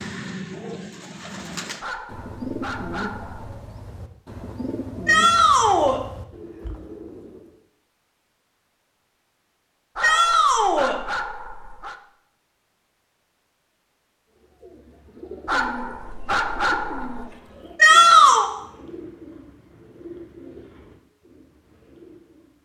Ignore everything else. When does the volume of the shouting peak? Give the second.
18 s.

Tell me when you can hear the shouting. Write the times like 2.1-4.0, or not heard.
5.0-6.0, 10.0-11.0, 17.8-18.4.